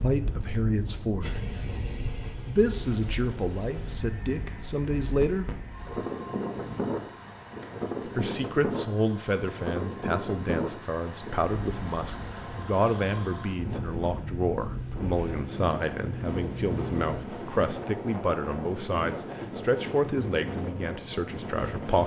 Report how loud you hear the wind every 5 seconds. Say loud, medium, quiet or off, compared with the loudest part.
medium, loud, loud, loud, loud.